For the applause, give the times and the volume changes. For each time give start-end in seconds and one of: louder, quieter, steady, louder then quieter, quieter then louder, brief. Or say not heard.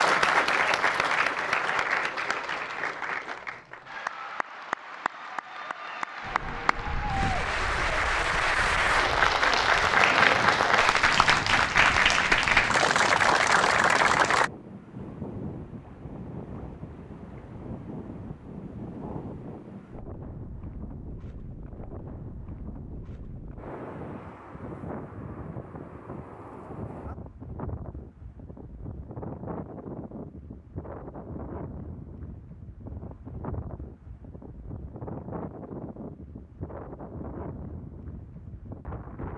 0.0-14.5 quieter then louder.